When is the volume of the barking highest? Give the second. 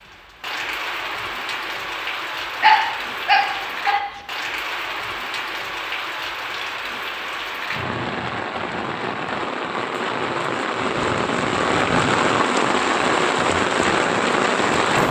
3 s.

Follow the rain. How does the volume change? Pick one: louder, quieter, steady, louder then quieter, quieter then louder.
louder.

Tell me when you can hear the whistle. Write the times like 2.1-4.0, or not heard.
not heard.